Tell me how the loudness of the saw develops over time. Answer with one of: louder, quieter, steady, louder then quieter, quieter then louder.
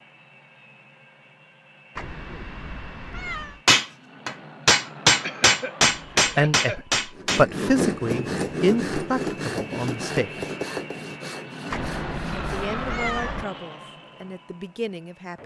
quieter.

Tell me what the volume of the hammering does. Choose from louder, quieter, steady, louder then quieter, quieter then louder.
quieter.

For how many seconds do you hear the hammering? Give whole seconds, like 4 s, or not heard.
7 s.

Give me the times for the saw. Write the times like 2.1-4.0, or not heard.
7.2-12.7.